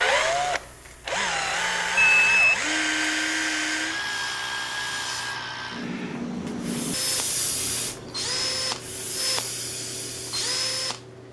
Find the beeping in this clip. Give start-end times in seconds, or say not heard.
1.9-2.6.